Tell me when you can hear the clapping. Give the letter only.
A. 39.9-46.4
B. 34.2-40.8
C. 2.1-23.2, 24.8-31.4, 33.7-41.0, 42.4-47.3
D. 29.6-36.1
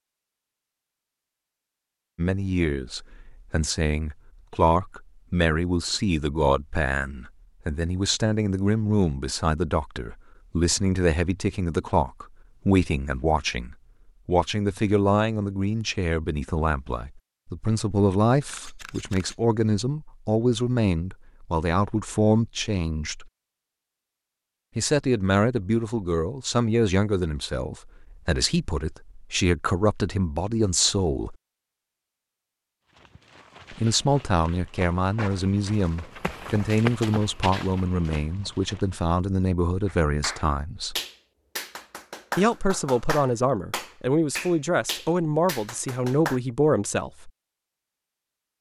A.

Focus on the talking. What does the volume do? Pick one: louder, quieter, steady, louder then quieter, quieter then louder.
steady.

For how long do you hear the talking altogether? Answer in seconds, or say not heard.
40 s.